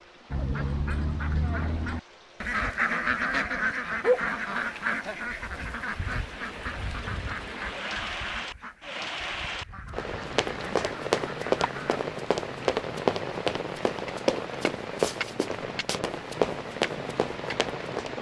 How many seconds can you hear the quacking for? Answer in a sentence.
You can hear the quacking for 12 seconds altogether.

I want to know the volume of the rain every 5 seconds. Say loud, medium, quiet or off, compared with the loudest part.
quiet, loud, loud, loud.